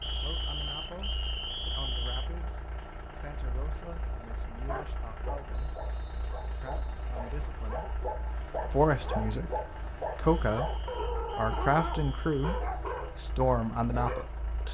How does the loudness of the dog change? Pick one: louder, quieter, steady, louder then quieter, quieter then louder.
louder.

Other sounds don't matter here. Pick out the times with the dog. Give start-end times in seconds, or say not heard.
4.5-14.2.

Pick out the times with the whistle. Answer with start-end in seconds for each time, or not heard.
0.0-2.3, 5.5-7.5, 10.2-12.7.